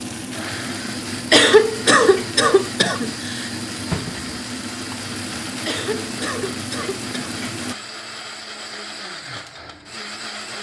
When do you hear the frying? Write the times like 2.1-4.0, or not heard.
0.0-7.8.